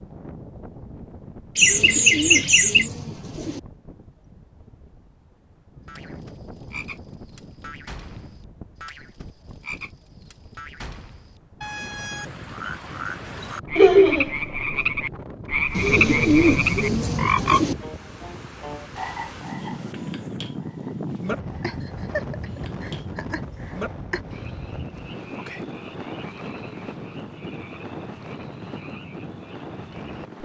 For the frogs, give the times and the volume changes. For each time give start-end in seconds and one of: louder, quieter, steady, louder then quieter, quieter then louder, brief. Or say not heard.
5.8-30.3 louder then quieter.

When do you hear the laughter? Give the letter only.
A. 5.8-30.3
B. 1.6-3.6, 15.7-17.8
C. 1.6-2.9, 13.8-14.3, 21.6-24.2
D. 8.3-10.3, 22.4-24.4
C.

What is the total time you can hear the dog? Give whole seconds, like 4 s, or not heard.
not heard.